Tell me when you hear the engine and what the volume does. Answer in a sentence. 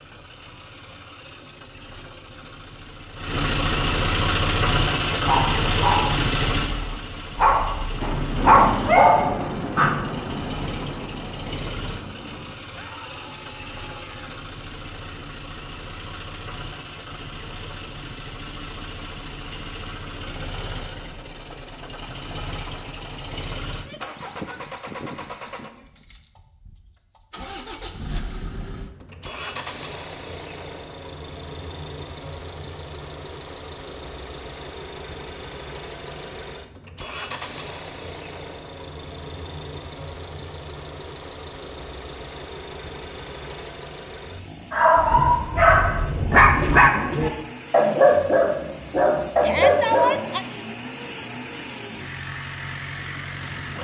You can hear the engine from 0.0 to 53.7 s, getting quieter.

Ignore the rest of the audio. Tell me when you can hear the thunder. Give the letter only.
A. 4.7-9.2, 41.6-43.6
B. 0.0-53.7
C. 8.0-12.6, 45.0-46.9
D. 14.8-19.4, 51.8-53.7
C.